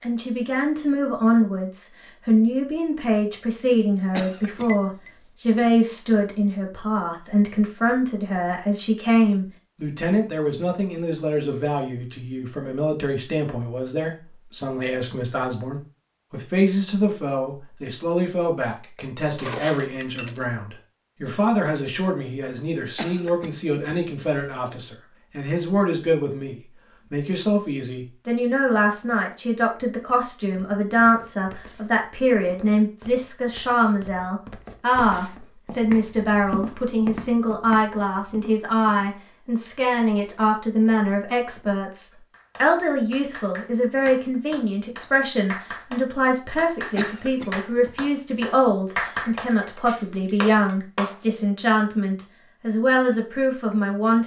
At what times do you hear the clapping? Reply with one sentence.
The clapping can be heard from 42.3 to 51.1 s.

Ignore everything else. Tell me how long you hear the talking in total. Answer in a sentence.
The talking can be heard for 54 seconds in total.